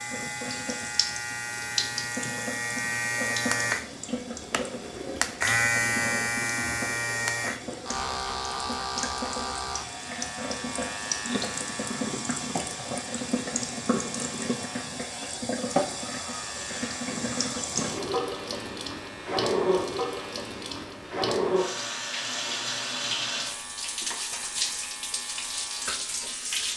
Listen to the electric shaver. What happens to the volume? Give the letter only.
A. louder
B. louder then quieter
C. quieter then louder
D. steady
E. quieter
E.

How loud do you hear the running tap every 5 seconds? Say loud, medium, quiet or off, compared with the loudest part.
medium, medium, loud, loud, loud, loud.